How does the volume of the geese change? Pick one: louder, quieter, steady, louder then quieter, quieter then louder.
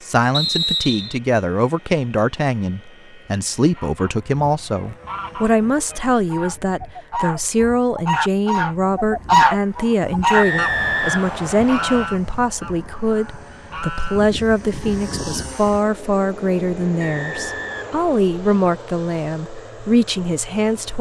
louder then quieter.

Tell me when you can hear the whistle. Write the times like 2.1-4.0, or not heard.
0.3-1.2, 10.3-12.1, 17.0-18.1.